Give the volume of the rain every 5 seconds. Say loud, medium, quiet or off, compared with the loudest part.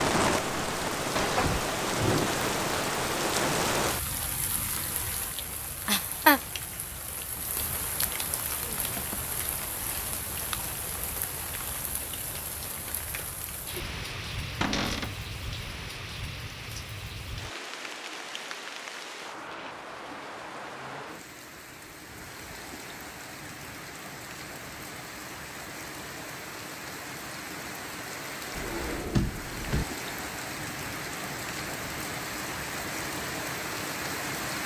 loud, loud, medium, medium, quiet, medium, medium.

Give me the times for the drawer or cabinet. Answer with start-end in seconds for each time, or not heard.
1.1-2.3, 14.6-15.2, 28.6-29.9.